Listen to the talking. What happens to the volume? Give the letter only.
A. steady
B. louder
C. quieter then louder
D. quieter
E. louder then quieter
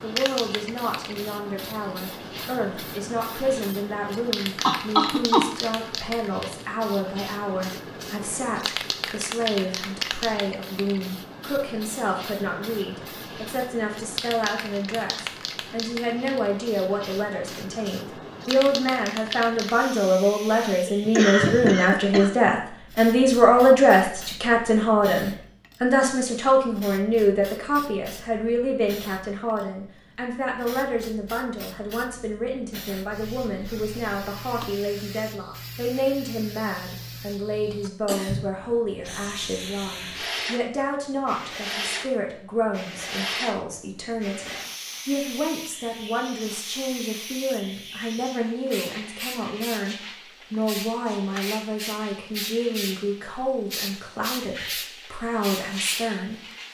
E.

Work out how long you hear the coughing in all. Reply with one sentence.
You can hear the coughing for 3 seconds altogether.